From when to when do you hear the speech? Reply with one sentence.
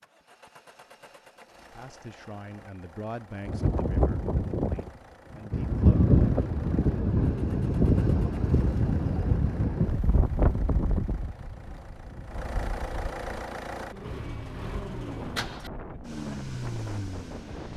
You can hear the speech from 1.7 to 6.0 s.